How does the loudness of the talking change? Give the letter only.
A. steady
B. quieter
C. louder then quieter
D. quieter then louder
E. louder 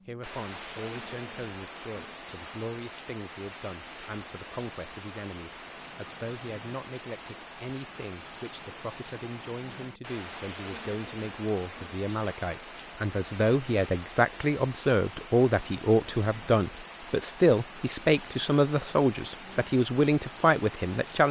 E.